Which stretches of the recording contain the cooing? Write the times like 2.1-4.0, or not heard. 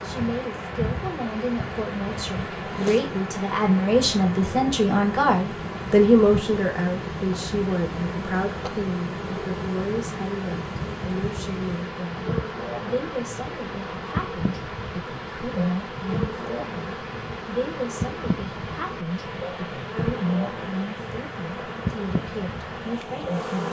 not heard.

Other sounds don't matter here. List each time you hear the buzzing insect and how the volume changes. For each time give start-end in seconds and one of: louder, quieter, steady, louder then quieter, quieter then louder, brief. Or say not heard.
0.0-23.6 steady.